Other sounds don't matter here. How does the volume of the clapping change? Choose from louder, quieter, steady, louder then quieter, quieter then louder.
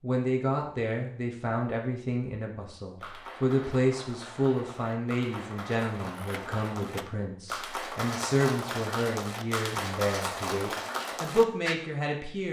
louder.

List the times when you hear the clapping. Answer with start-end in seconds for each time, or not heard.
3.0-11.8.